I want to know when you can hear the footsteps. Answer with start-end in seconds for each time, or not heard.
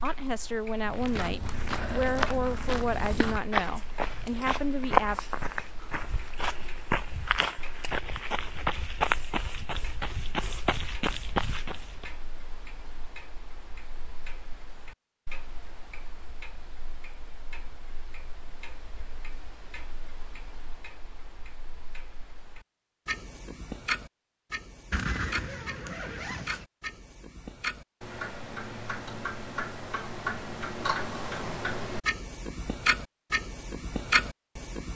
0.8-12.1.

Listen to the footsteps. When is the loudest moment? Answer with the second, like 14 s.
5 s.